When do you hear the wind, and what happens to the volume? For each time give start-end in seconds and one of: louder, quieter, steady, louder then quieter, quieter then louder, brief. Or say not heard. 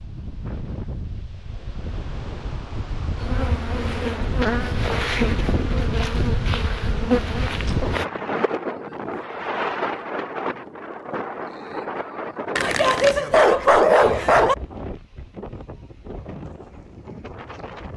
0.0-17.9 louder then quieter.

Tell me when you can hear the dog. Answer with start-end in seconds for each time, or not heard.
12.6-14.6.